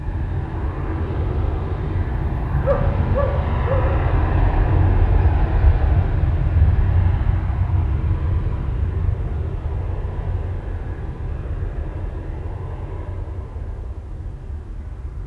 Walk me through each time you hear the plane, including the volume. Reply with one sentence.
You can hear the plane from 0.0 to 15.2 s, getting quieter.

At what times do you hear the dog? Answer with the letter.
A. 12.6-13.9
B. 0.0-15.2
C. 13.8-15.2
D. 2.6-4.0
D.